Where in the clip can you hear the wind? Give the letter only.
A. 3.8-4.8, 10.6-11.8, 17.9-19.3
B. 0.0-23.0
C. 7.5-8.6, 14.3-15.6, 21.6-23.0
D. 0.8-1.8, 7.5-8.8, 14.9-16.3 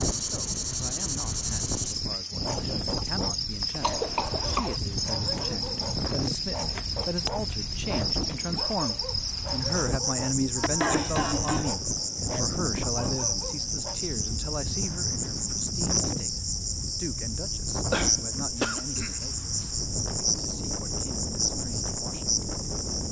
B.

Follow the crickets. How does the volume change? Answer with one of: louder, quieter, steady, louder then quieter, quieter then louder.
steady.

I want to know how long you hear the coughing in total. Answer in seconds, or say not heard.
4 s.